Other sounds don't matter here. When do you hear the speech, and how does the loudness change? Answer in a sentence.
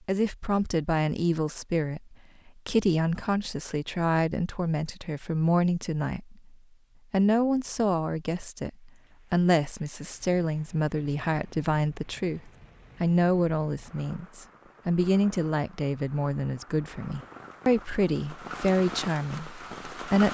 The speech can be heard from 0.1 to 20.2 s, at a steady volume.